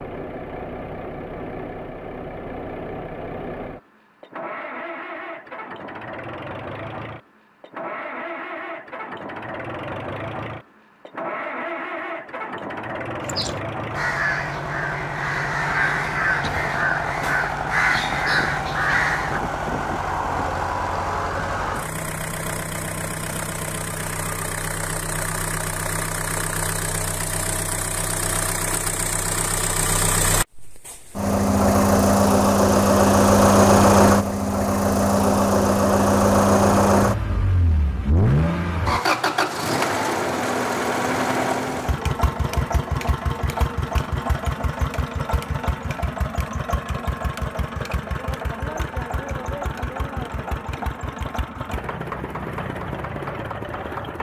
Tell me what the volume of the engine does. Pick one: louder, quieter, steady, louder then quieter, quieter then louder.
louder then quieter.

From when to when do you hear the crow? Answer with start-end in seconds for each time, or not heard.
13.2-19.4.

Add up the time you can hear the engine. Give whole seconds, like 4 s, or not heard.
54 s.